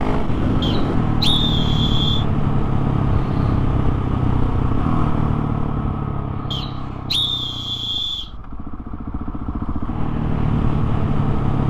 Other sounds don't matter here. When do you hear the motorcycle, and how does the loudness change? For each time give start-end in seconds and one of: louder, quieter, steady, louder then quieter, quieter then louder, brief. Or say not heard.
0.0-11.6 quieter then louder.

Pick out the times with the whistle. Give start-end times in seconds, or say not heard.
0.6-2.2, 6.5-8.3.